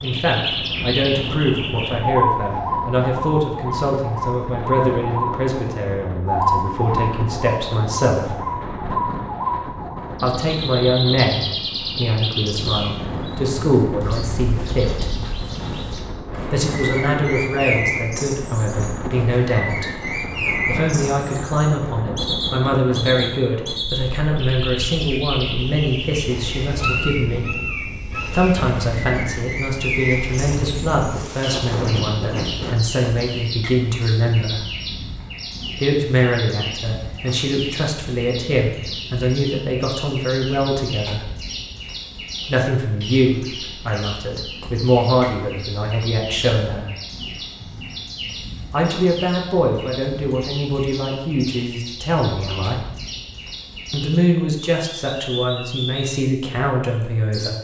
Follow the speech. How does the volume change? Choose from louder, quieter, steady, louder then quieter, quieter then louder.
steady.